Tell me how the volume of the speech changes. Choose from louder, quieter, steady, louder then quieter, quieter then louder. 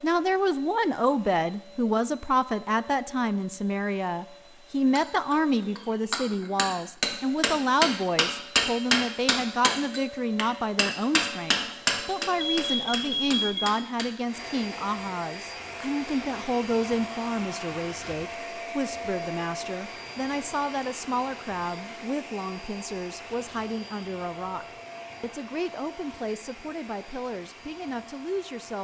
quieter.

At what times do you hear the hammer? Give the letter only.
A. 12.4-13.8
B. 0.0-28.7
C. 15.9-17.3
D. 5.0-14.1
D.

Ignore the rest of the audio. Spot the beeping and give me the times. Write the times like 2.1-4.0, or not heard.
12.4-13.8.